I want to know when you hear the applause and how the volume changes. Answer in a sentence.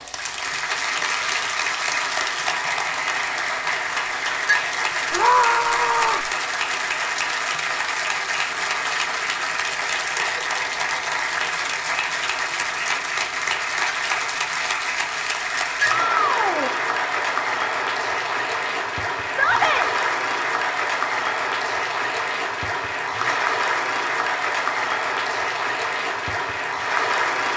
The applause can be heard from 0.0 to 27.5 s, at a steady volume.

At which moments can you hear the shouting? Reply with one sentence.
The shouting can be heard from 5.1 to 6.2 s, from 16.1 to 16.8 s and from 19.2 to 19.9 s.